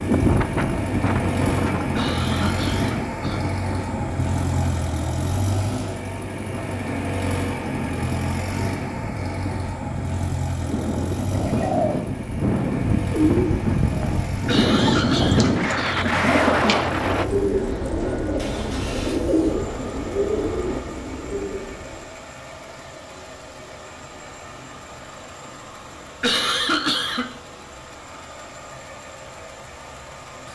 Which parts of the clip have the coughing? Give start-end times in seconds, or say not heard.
1.9-3.4, 14.4-16.1, 26.2-27.3.